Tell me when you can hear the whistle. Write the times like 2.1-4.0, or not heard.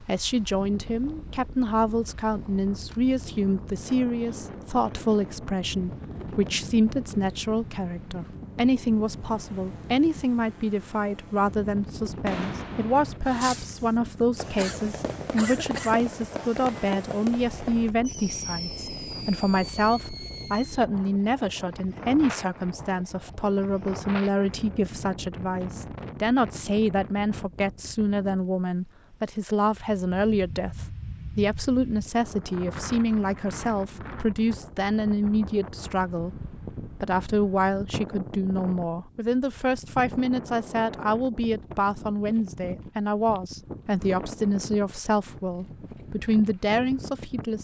not heard.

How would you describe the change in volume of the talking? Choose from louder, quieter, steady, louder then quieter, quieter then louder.
steady.